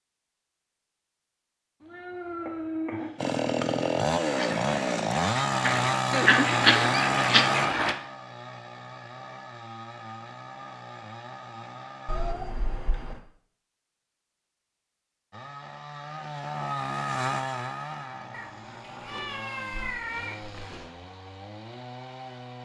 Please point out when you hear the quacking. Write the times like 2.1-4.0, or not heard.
4.3-8.0.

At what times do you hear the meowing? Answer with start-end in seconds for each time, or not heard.
1.8-3.2, 12.1-13.2, 18.3-20.9.